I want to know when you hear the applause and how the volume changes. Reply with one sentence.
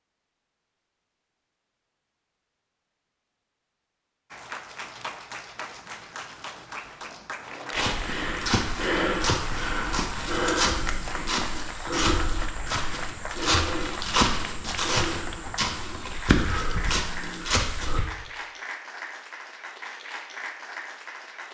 The applause can be heard from 4.3 to 21.4 s, at a steady volume.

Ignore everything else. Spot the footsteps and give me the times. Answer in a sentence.
You can hear the footsteps from 7.7 to 18.0 s.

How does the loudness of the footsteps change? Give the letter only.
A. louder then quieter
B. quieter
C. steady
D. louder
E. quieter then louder
C.